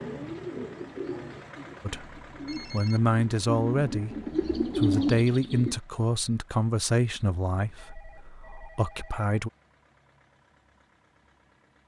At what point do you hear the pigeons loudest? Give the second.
5 s.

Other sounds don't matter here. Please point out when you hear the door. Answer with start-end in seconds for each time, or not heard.
not heard.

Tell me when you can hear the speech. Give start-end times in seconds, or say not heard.
1.8-9.5.